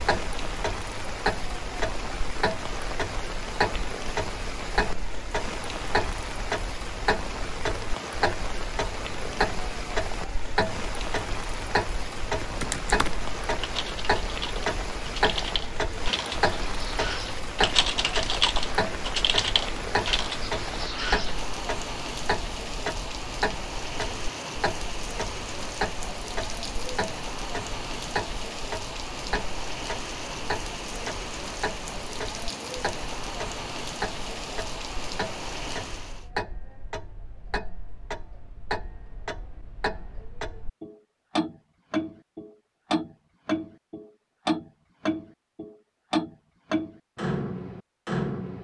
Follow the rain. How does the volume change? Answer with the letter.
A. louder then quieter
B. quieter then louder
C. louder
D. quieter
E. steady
E.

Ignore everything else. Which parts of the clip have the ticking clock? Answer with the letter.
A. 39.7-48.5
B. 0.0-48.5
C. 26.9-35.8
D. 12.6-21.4
B.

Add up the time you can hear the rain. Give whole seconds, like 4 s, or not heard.
36 s.